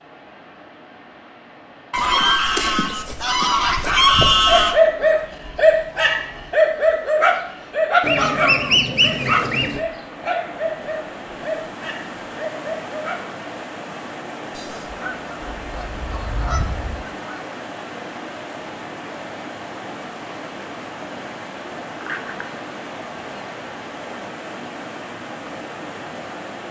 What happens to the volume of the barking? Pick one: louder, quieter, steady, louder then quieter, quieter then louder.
quieter.